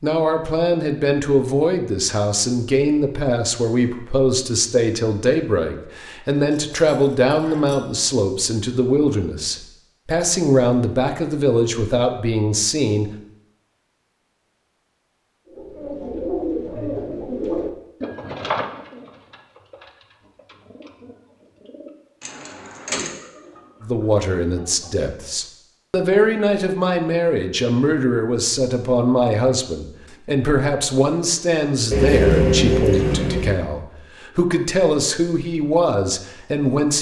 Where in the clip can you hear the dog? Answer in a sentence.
The dog can't be heard in this clip.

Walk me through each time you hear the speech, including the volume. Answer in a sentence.
The speech can be heard from 0.0 to 13.1 s, at a steady volume; and from 23.8 to 36.9 s, at a steady volume.